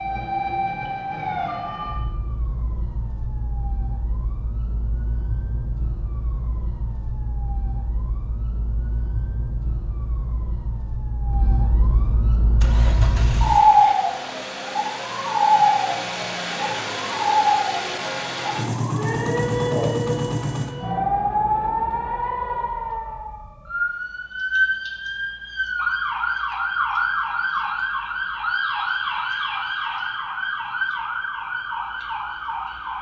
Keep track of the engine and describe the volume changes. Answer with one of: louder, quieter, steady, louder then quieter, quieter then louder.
louder.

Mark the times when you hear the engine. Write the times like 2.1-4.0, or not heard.
12.6-20.8.